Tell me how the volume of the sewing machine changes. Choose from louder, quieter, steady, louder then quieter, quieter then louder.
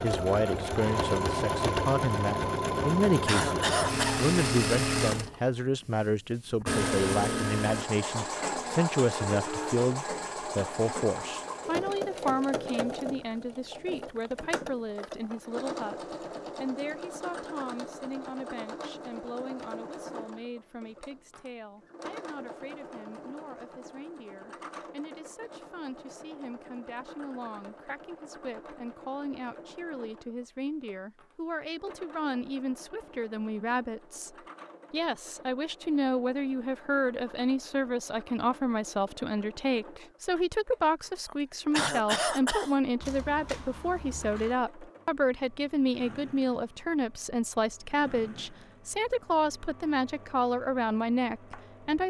quieter.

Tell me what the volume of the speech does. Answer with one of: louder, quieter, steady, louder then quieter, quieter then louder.
quieter then louder.